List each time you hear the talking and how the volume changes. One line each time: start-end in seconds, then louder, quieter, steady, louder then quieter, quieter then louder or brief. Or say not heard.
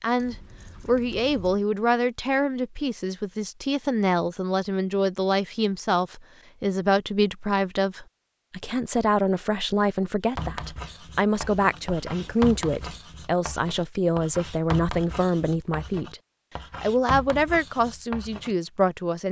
0.0-16.2 steady
16.8-19.2 brief.